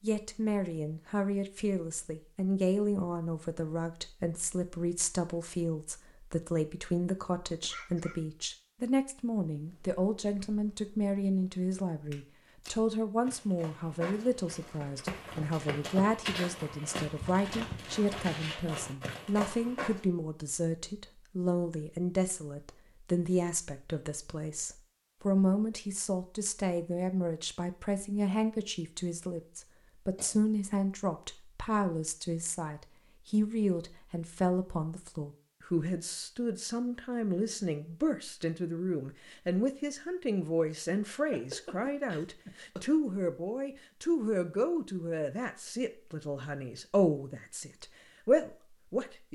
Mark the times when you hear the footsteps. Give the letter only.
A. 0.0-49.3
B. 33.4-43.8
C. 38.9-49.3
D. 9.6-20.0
D.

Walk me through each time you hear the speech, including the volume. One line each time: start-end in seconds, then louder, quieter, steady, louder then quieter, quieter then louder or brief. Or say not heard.
0.0-49.3 steady.